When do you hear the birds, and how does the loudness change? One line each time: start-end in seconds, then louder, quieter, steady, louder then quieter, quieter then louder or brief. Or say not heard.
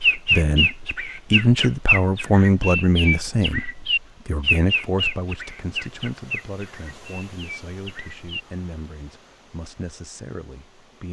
0.0-8.4 quieter.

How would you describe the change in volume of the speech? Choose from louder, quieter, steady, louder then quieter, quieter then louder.
quieter.